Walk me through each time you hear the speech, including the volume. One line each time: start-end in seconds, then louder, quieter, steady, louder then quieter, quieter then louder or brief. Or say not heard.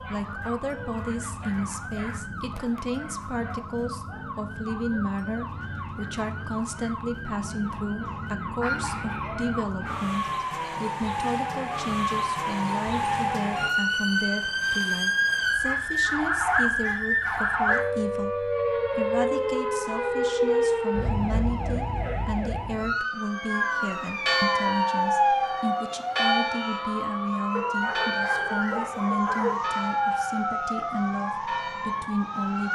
0.1-32.6 steady.